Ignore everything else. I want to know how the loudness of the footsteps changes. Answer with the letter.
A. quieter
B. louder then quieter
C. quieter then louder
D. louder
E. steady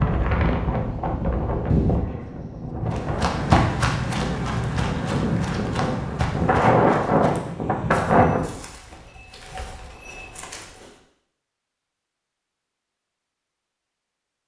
A.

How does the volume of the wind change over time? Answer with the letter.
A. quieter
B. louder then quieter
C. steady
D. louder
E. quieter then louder
E.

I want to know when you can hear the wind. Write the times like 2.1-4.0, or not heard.
0.0-8.4.